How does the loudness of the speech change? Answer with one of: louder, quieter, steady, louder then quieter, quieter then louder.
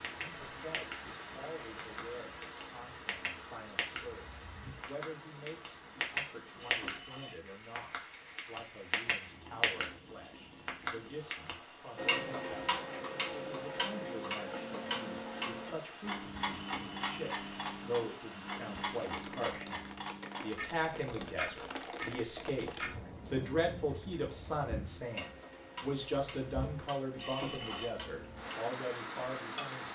louder.